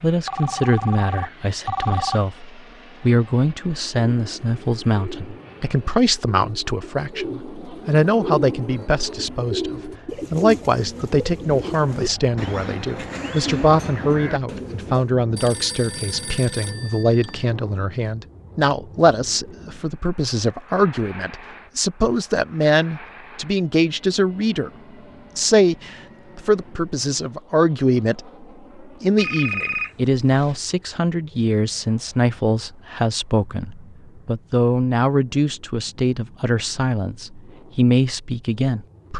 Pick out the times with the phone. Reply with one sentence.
The phone can be heard from 0.2 to 2.2 s, from 15.3 to 17.4 s and from 29.1 to 30.6 s.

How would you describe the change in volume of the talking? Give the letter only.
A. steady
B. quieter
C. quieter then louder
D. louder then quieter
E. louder
A.